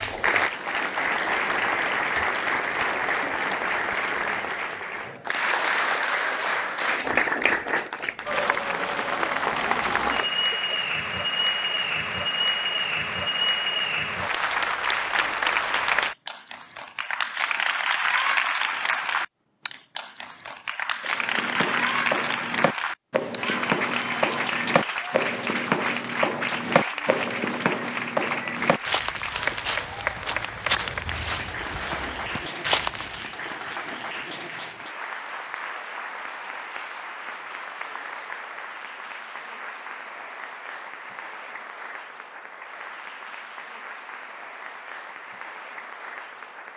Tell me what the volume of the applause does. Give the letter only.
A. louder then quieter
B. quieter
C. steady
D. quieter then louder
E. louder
B.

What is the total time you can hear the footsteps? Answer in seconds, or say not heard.
12 s.